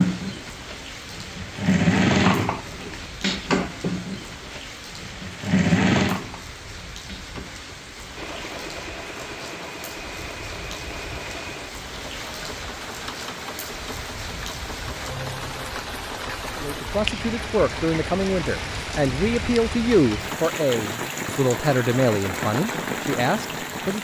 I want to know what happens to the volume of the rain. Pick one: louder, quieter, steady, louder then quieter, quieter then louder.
louder.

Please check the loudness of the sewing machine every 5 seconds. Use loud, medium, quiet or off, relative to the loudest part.
loud, loud, quiet, quiet, quiet.